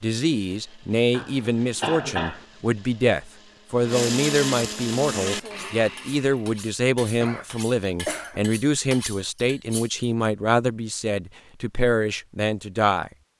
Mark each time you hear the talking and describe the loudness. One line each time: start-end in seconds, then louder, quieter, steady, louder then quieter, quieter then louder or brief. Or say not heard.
0.0-13.1 steady.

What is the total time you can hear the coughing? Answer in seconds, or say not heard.
3 s.